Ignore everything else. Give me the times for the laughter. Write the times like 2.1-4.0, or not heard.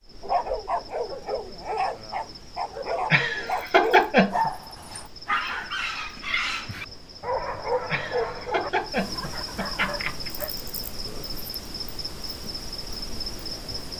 3.1-4.5, 7.9-10.3.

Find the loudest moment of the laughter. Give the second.
4 s.